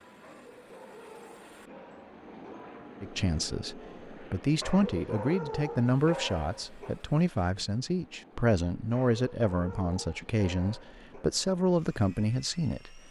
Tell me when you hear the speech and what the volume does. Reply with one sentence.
The speech can be heard from 3.0 to 13.0 s, at a steady volume.